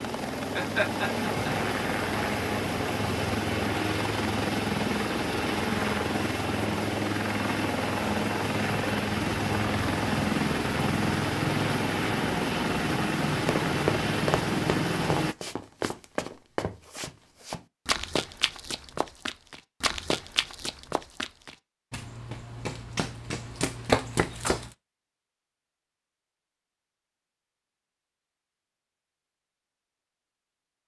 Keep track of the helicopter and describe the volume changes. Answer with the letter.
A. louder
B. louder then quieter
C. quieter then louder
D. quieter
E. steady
E.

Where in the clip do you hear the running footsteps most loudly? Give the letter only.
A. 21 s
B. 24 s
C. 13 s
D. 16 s
B.